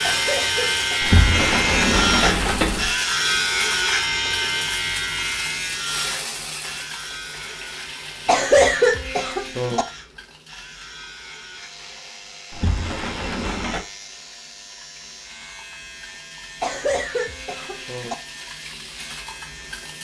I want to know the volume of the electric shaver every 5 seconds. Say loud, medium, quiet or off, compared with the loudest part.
loud, medium, quiet, quiet.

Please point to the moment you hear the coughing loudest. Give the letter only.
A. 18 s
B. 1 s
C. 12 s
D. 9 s
D.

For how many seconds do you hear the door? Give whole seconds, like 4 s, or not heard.
3 s.